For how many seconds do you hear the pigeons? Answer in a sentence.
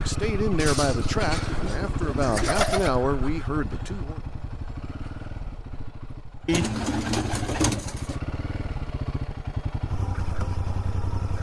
The pigeons can be heard for 4 seconds in total.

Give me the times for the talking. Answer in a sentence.
You can hear the talking from 0.0 to 4.2 s.